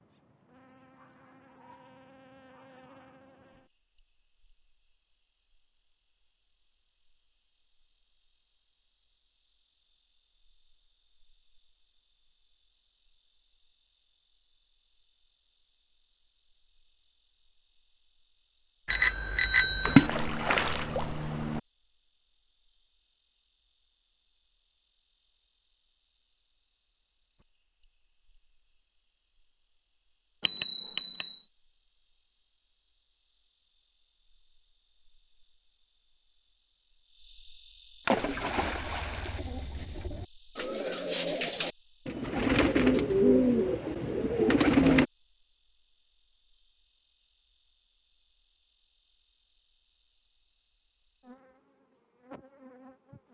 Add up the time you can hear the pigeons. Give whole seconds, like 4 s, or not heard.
7 s.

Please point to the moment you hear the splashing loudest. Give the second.
20 s.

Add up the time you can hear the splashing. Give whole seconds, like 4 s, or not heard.
3 s.